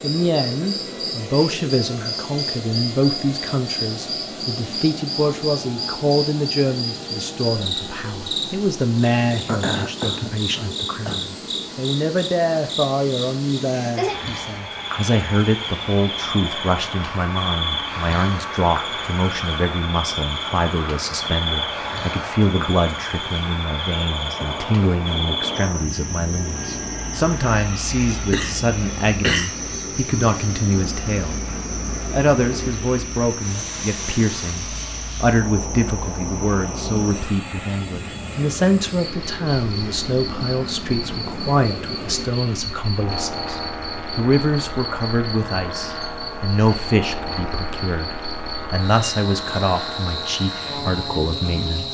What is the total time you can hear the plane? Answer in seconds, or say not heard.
52 s.